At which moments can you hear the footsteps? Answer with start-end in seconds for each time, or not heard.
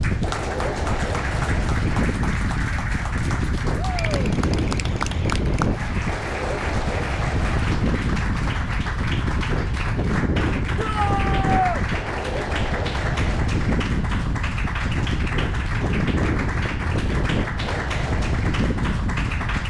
not heard.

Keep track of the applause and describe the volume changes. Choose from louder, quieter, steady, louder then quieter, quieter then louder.
steady.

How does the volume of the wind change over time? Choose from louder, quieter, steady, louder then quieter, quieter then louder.
steady.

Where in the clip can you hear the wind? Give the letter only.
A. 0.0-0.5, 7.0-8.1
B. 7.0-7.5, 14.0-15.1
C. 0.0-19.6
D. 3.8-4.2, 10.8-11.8
C.